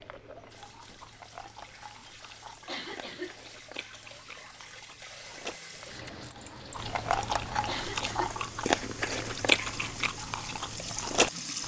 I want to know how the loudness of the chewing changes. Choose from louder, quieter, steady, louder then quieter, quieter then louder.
louder.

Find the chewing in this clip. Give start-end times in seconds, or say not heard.
0.0-11.6.